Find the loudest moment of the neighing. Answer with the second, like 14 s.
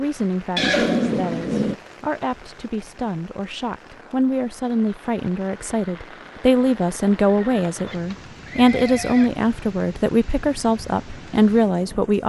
1 s.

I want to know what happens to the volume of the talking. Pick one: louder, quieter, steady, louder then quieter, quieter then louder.
louder.